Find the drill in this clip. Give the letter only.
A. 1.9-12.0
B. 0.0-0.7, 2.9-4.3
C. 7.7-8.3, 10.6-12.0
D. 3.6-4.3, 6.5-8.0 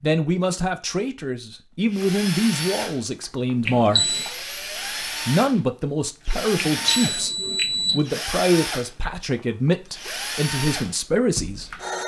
A.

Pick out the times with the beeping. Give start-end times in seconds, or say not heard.
3.6-4.3, 6.5-8.0.